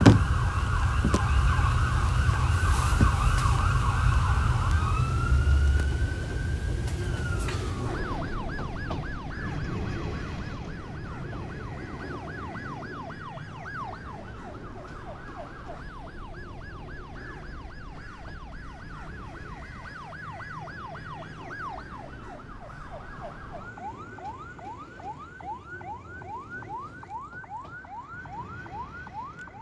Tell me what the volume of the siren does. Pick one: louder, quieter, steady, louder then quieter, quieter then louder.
quieter.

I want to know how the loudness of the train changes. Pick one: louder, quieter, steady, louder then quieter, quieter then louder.
quieter.